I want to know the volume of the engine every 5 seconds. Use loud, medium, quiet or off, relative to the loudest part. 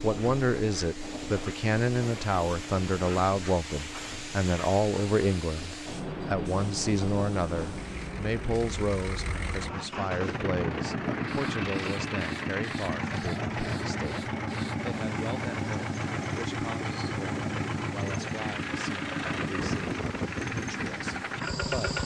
medium, medium, loud, loud, loud.